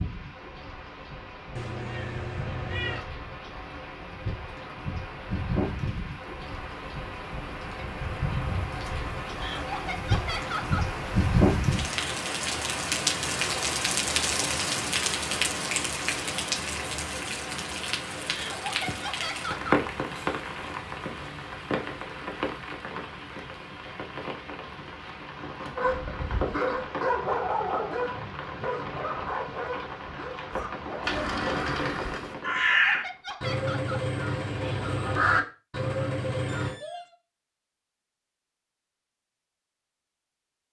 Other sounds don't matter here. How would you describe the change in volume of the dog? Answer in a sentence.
The loudness of the dog goes down.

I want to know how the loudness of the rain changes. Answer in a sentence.
The volume of the rain goes up, then down.